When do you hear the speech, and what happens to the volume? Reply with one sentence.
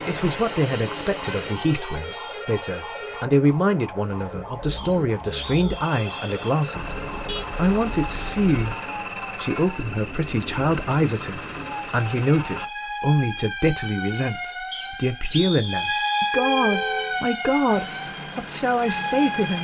The speech can be heard from 0.1 to 19.5 s, at a steady volume.